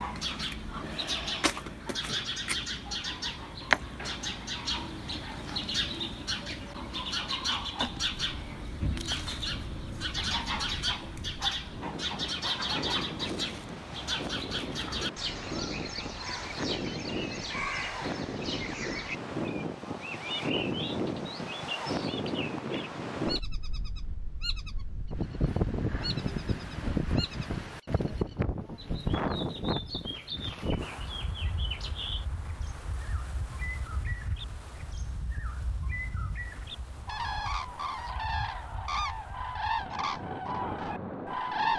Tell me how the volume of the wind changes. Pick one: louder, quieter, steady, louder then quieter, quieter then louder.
louder then quieter.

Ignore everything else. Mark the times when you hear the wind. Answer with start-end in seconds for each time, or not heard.
7.8-41.7.